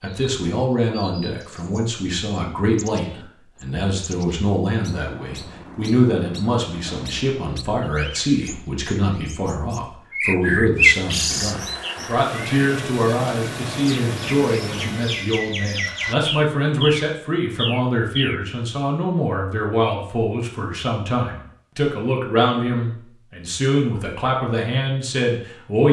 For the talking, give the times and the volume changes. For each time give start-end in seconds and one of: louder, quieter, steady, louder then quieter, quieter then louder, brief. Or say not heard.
0.0-25.8 steady.